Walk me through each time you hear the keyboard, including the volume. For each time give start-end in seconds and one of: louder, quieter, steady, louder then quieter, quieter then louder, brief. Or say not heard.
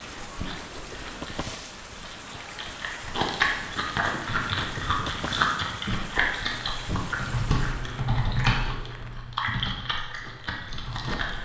4.1-11.3 louder then quieter.